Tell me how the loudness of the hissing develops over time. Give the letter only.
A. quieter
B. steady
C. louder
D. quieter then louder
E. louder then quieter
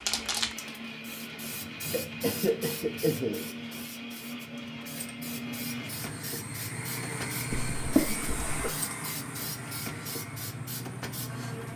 D.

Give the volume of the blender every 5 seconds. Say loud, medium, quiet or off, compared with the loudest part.
loud, loud, medium.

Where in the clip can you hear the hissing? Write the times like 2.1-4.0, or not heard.
0.0-11.7.